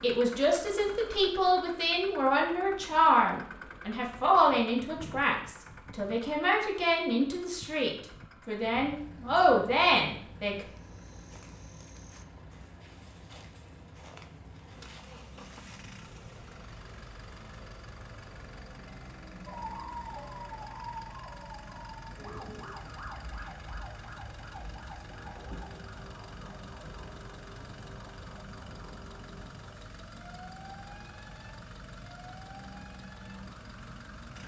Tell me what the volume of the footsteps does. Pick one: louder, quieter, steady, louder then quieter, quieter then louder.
steady.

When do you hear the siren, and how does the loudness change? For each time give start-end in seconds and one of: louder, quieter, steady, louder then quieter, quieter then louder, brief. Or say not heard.
19.4-34.1 quieter.